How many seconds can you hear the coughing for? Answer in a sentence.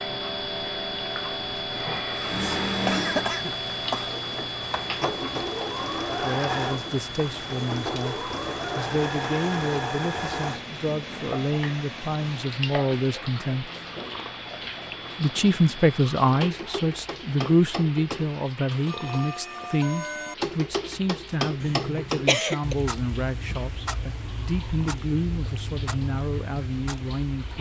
You can hear the coughing for 3 seconds altogether.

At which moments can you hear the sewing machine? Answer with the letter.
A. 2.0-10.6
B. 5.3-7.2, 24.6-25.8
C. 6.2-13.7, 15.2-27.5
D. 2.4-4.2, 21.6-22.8
A.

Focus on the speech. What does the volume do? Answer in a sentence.
The loudness of the speech goes up, then down.